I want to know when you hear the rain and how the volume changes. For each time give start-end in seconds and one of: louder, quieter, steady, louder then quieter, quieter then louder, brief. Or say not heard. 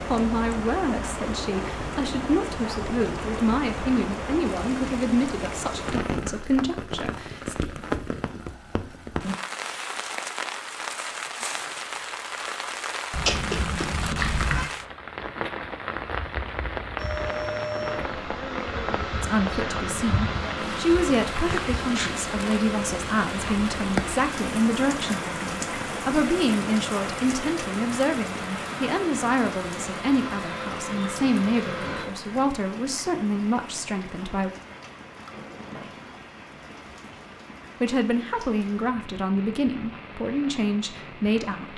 0.0-41.7 quieter.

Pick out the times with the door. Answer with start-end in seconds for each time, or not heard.
35.3-36.1.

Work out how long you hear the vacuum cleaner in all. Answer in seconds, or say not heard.
15 s.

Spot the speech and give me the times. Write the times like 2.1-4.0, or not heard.
0.1-7.5, 19.2-34.5, 37.8-41.7.